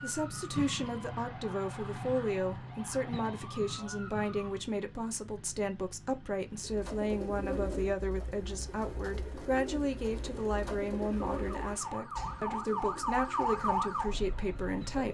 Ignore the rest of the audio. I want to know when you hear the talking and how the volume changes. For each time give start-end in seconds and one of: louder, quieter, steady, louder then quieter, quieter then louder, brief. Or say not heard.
0.0-15.0 steady.